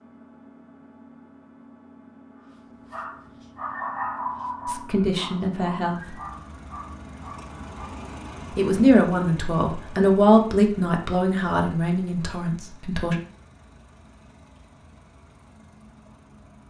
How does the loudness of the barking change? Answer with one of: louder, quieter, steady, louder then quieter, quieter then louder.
quieter.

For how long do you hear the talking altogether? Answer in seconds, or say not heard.
6 s.